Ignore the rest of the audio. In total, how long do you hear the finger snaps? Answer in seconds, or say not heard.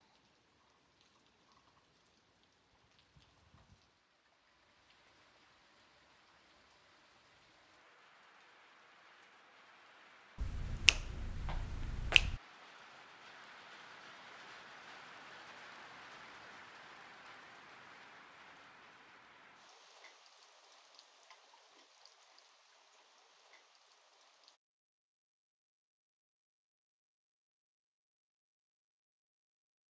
2 s.